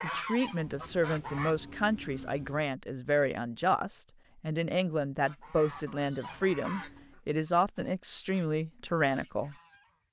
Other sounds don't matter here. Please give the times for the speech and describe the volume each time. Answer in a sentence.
The speech can be heard from 0.0 to 9.6 s, at a steady volume.